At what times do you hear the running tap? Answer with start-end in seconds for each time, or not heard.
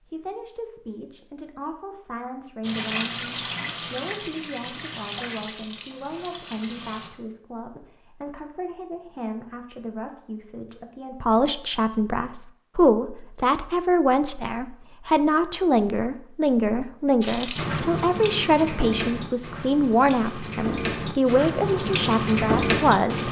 2.6-7.1, 17.2-23.2.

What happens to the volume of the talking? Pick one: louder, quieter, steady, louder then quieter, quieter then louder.
louder.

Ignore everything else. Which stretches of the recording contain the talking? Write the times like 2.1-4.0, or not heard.
0.1-23.2.